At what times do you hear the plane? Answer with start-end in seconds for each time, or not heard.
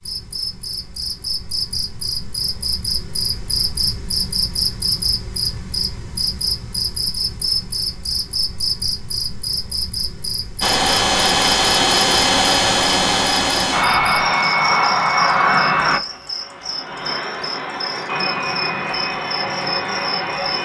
10.6-20.6.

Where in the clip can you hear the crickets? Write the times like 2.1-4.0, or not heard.
0.0-20.6.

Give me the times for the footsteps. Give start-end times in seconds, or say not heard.
not heard.